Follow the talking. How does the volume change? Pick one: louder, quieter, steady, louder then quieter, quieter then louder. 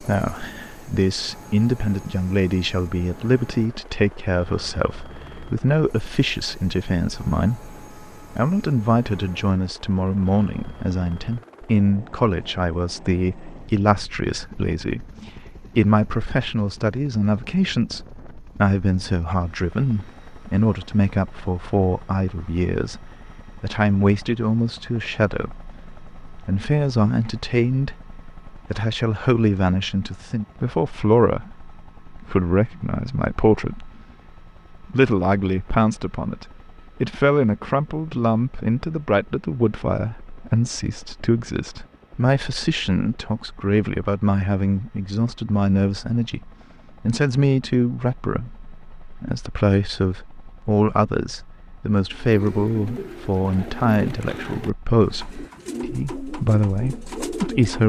steady.